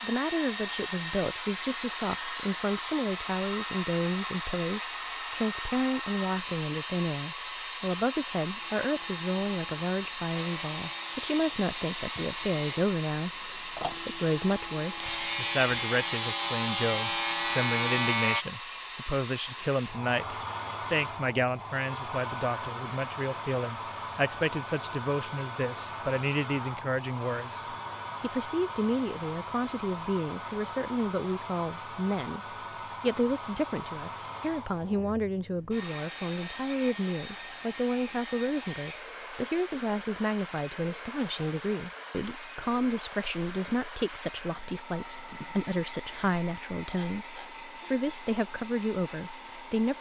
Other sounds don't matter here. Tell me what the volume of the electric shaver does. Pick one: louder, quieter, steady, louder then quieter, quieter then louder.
louder.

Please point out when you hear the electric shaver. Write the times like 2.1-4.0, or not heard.
8.6-18.4.